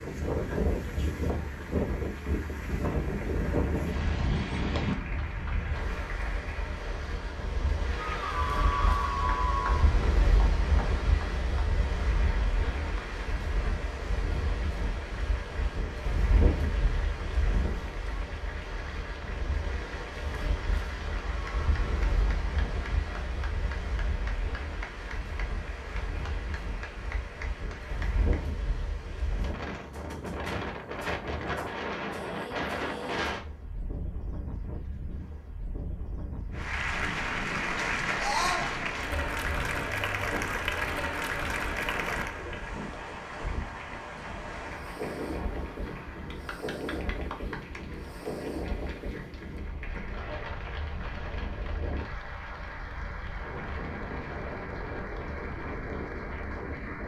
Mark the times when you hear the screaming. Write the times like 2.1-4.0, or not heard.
8.1-9.9, 38.1-38.7.